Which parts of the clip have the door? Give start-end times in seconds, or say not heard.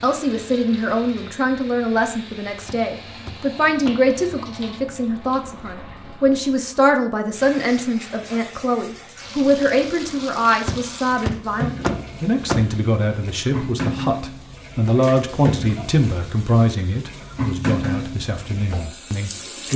2.6-4.0, 10.7-12.8.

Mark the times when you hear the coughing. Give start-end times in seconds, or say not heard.
not heard.